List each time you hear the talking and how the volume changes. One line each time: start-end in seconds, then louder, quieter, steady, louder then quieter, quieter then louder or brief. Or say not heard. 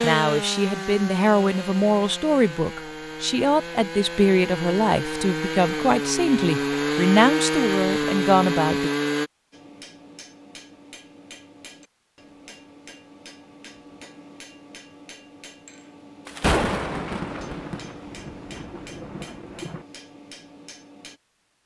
0.0-8.9 steady.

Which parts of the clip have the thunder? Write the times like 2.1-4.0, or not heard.
16.2-19.9.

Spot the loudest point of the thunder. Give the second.
17 s.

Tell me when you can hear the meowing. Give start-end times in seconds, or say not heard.
not heard.